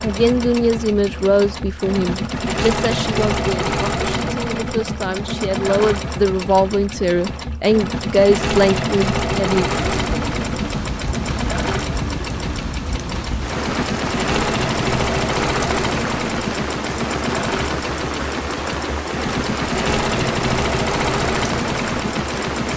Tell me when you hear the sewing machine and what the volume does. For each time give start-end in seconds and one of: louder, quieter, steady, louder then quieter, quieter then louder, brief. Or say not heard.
0.0-22.7 steady.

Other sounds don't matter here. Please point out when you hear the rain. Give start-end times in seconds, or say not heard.
9.7-22.7.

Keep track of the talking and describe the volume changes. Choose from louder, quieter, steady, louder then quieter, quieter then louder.
quieter then louder.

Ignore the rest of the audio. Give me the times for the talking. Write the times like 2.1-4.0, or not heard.
0.0-9.7.